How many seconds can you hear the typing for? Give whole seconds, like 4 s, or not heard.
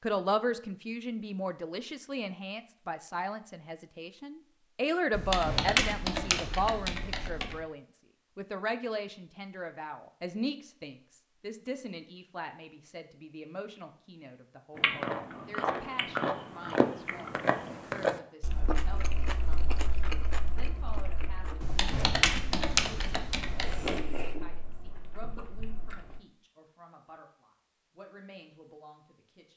5 s.